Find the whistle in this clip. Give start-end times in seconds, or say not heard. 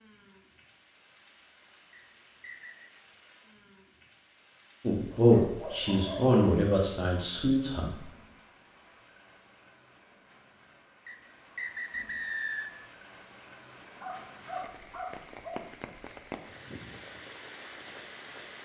1.9-2.9, 11.1-12.8.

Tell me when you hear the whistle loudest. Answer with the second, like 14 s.
12 s.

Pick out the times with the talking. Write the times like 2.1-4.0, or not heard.
4.8-8.1.